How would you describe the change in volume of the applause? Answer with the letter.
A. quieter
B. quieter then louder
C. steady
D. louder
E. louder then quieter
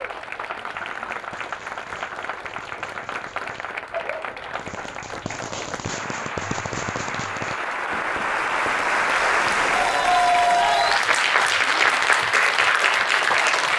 D.